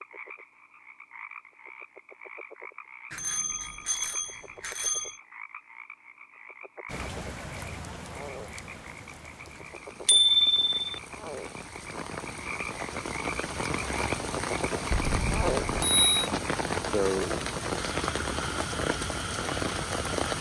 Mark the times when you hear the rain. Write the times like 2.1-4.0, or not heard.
6.8-20.3.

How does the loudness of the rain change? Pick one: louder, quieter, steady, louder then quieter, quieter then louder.
louder.